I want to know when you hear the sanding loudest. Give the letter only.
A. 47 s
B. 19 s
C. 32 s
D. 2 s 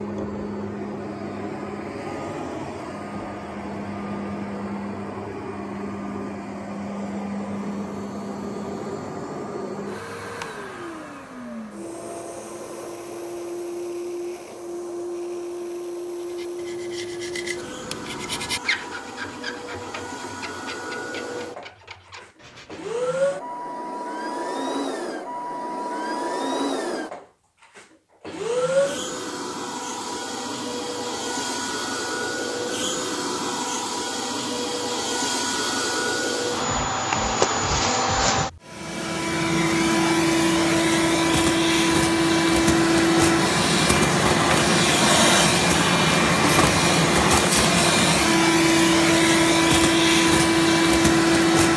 B.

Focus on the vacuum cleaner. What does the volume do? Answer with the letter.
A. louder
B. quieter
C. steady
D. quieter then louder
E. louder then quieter
A.